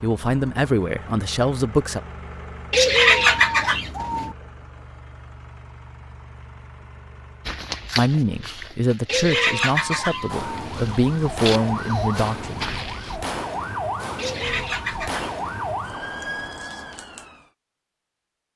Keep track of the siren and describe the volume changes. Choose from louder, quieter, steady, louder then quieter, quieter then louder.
steady.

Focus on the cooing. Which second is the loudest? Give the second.
3 s.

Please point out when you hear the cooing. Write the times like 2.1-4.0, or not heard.
2.7-4.3, 9.1-10.7, 14.2-15.8.